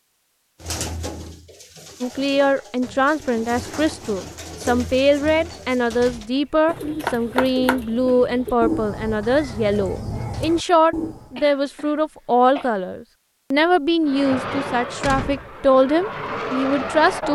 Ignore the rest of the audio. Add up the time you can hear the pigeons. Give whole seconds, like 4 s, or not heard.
11 s.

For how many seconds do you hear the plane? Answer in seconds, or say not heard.
3 s.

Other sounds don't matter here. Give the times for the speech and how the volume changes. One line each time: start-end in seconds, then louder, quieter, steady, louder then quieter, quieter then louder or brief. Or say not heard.
2.0-17.2 steady.